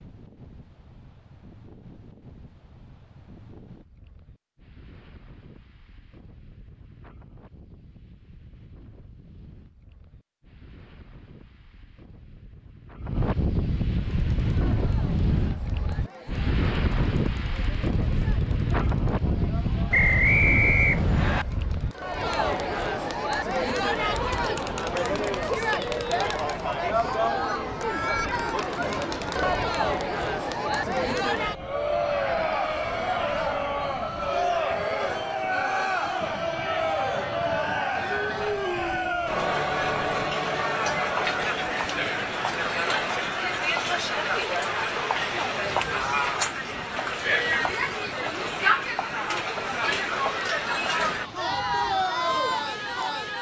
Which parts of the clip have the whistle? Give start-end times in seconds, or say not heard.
19.9-21.4.